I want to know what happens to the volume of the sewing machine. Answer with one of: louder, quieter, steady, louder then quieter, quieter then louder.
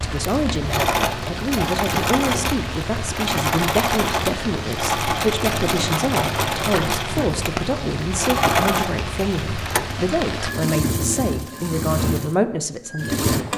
steady.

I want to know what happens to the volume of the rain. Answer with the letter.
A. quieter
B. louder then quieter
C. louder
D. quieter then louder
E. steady
E.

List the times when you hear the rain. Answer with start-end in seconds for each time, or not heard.
0.0-10.6.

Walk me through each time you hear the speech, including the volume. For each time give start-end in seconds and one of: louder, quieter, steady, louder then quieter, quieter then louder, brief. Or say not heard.
0.0-13.5 steady.